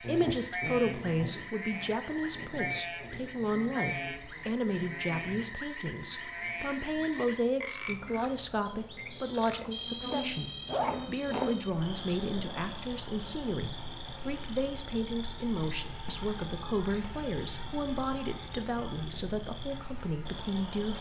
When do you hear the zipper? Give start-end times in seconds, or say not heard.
9.6-11.6.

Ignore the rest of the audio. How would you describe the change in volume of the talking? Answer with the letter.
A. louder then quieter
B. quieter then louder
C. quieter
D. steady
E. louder
D.